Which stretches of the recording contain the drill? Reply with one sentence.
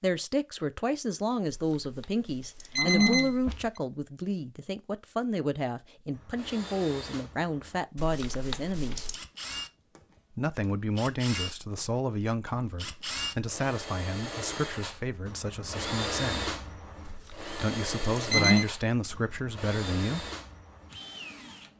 You can hear the drill from 6.1 to 21.7 s.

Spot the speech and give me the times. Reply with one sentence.
You can hear the speech from 0.0 to 9.1 s, from 10.3 to 16.6 s and from 17.4 to 20.3 s.